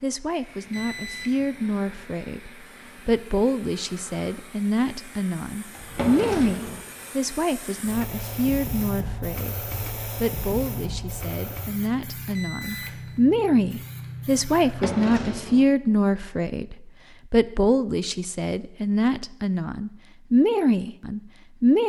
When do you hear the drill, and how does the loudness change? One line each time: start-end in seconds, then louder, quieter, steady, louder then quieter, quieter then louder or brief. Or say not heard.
not heard.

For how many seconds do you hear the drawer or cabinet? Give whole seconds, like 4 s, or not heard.
2 s.